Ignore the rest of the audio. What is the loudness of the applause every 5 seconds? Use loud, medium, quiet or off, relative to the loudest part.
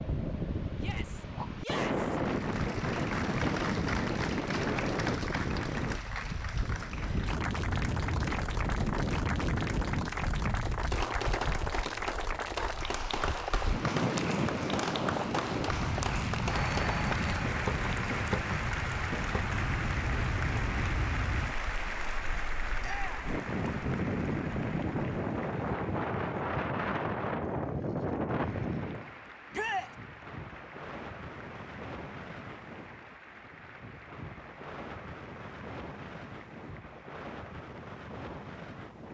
loud, loud, loud, loud, loud, quiet, quiet, quiet.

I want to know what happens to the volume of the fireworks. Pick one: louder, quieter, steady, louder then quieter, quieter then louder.
steady.